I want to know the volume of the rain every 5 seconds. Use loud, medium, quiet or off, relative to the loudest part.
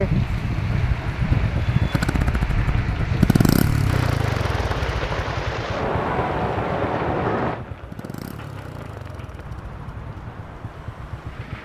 loud, loud, quiet.